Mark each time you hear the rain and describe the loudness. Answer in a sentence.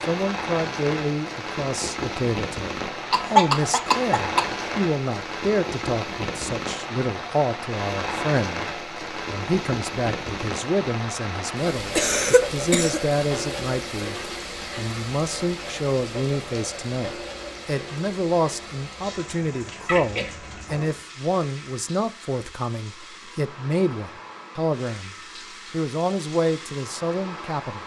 You can hear the rain from 0.0 to 27.8 s, getting quieter.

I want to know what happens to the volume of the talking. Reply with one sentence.
The loudness of the talking stays about the same.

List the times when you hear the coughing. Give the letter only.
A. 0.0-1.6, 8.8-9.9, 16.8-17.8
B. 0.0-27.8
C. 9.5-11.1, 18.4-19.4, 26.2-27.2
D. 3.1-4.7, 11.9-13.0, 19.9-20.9
D.